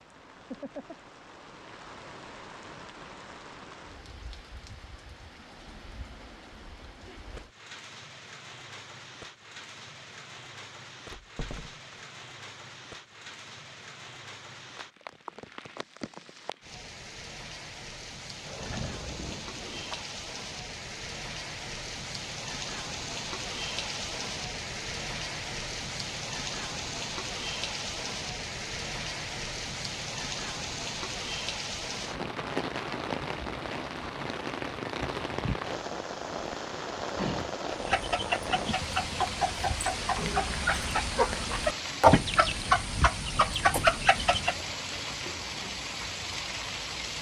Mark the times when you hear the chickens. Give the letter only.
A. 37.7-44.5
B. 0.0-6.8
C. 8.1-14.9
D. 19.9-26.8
A.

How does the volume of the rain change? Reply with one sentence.
The volume of the rain goes up.